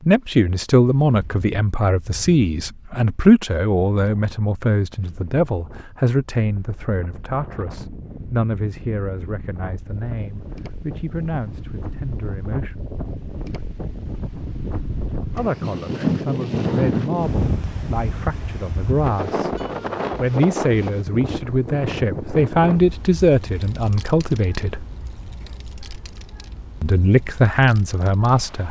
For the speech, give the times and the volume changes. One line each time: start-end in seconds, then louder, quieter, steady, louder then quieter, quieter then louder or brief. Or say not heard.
0.1-12.8 quieter
15.3-24.9 louder
26.8-28.6 brief.